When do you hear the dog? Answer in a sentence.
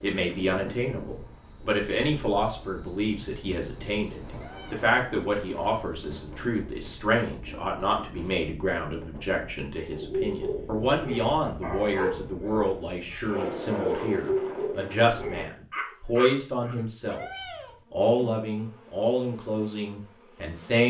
You can hear the dog from 9.7 to 16.8 s.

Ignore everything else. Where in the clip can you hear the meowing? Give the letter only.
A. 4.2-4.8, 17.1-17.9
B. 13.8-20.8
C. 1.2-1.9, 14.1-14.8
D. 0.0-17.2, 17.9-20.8
A.